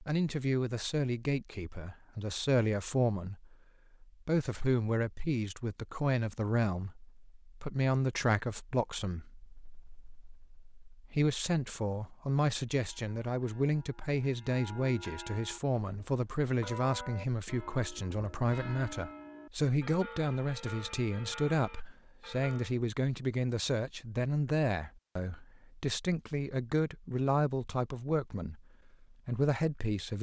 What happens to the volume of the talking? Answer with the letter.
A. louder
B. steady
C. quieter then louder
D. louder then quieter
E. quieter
B.